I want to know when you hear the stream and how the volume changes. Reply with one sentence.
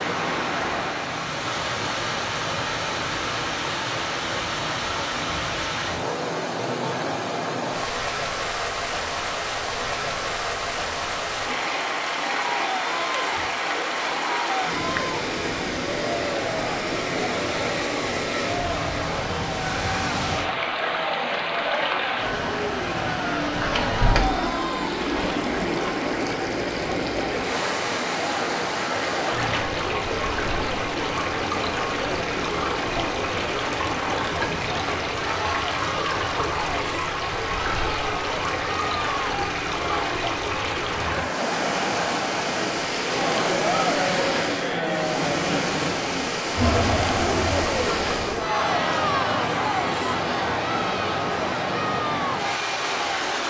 You can hear the stream from 0.0 to 53.4 s, at a steady volume.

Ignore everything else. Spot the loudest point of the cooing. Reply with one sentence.
The volume of the cooing peaks at 24 seconds.